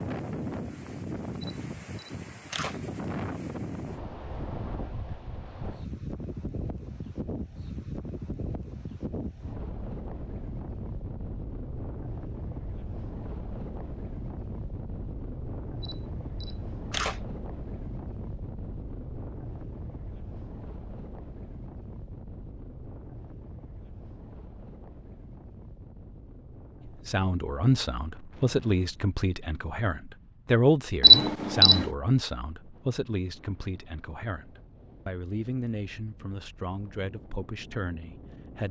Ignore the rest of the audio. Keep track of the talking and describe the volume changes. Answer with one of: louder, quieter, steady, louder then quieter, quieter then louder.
quieter.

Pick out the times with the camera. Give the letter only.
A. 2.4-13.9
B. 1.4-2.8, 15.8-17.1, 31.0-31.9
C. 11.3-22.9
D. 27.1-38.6
B.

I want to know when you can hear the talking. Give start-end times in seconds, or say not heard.
27.1-38.6.